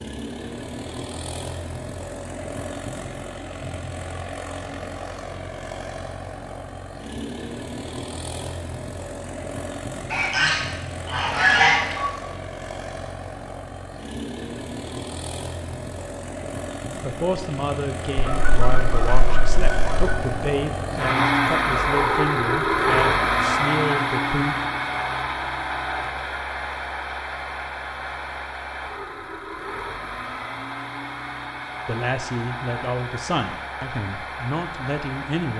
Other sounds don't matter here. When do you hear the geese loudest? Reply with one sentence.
The loudest moment of the geese is at 12 seconds.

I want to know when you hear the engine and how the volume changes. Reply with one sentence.
The engine can be heard from 0.0 to 35.5 s, getting louder then quieter.